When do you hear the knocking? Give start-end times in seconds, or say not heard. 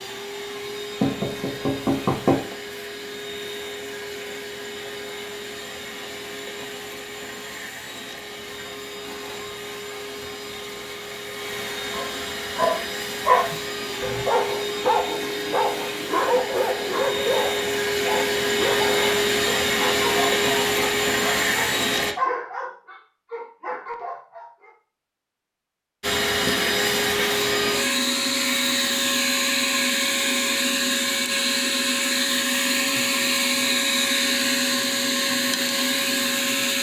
1.0-2.5.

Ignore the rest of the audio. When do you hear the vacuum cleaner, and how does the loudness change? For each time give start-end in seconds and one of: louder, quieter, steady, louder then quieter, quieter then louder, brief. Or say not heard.
0.0-22.1 louder
26.0-36.7 steady.